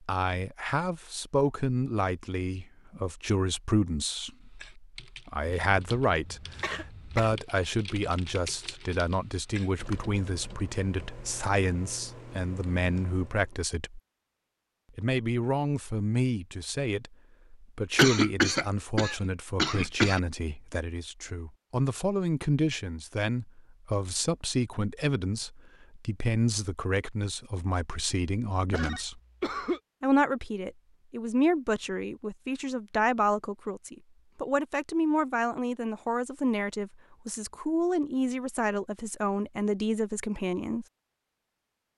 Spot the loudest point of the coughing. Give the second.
18 s.